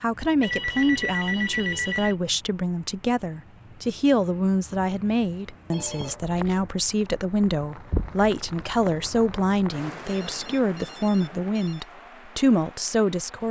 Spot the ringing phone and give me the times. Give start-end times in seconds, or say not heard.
0.4-2.1, 5.7-6.5, 10.1-11.8.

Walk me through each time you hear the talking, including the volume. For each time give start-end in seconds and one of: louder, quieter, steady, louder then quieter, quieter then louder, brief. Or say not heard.
0.0-13.4 steady.